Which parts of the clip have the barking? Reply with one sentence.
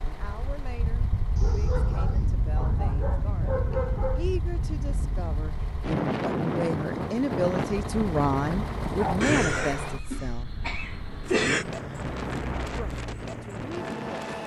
The barking can be heard from 1.4 to 4.3 s and from 8.8 to 10.1 s.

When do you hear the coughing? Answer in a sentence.
The coughing can be heard from 9.2 to 11.7 s.